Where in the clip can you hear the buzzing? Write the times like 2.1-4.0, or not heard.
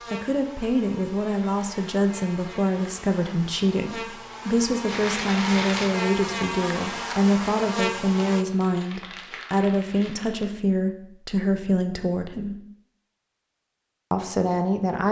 0.0-8.4.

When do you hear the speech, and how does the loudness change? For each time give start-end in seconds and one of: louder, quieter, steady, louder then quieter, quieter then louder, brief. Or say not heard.
0.1-12.6 steady
14.1-15.0 brief.